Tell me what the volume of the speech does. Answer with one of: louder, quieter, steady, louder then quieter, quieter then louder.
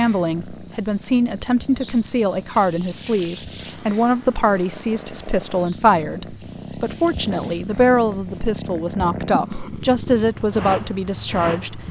steady.